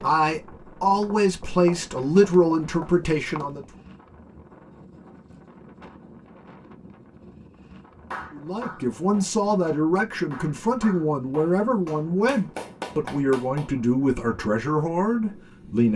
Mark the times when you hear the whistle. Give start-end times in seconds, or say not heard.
not heard.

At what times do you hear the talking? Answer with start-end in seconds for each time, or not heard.
0.0-3.6, 8.3-15.9.